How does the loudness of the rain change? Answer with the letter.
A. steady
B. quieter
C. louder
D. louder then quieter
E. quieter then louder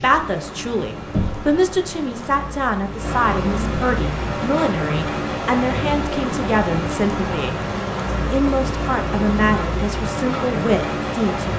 C.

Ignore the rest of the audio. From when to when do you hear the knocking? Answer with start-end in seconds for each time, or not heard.
1.1-1.6.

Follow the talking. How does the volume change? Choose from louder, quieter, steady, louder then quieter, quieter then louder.
steady.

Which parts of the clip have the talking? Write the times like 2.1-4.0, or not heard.
0.0-7.5, 8.3-11.5.